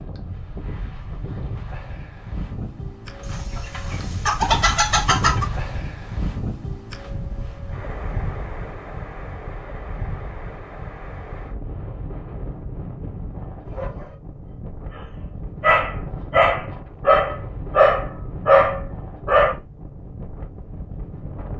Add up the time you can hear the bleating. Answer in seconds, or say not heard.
not heard.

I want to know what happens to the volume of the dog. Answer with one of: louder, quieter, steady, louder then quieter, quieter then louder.
louder.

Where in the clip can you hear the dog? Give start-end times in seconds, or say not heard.
13.7-19.6.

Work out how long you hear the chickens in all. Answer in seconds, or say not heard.
2 s.